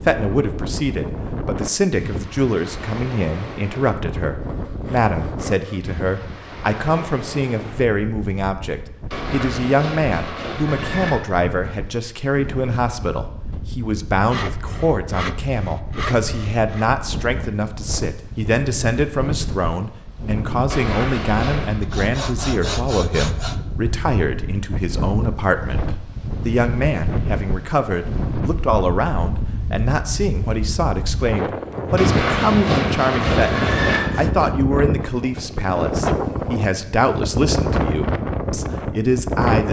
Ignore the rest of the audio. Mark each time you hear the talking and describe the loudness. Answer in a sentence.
The talking can be heard from 0.0 to 39.6 s, at a steady volume.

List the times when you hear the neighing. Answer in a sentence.
The neighing can be heard from 9.1 to 11.1 s, from 20.7 to 21.8 s and from 31.9 to 34.0 s.